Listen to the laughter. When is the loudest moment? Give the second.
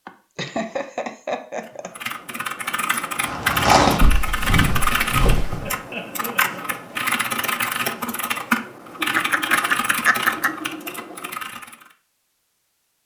10 s.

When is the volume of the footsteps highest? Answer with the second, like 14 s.
4 s.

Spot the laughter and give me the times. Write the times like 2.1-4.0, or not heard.
0.1-1.9, 5.6-7.1, 9.2-10.6.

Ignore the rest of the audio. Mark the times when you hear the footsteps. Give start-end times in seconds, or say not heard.
3.2-5.8.